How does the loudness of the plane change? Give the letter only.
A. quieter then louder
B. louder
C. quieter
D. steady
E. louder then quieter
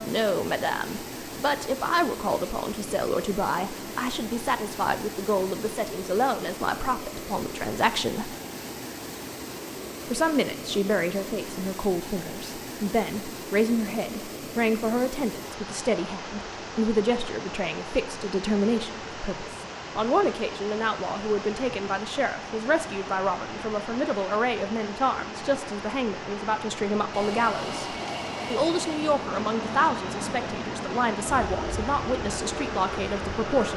D.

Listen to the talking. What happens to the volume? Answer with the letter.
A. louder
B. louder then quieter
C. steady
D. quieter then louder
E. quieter
C.